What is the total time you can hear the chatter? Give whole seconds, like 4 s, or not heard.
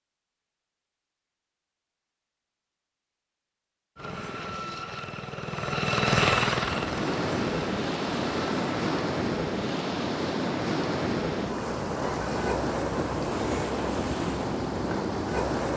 not heard.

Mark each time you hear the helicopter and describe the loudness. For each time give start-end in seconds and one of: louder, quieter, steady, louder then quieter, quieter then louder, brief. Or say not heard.
4.0-8.8 louder then quieter.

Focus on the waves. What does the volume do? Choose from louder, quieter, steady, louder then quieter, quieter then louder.
steady.